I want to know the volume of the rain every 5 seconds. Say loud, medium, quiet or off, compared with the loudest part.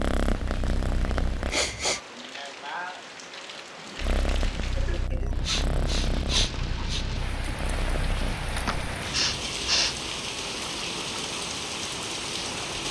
medium, loud, loud.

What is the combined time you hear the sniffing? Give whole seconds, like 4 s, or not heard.
4 s.